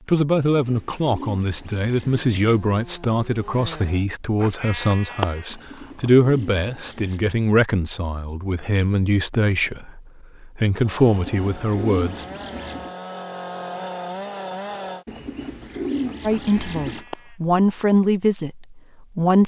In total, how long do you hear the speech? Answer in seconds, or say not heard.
15 s.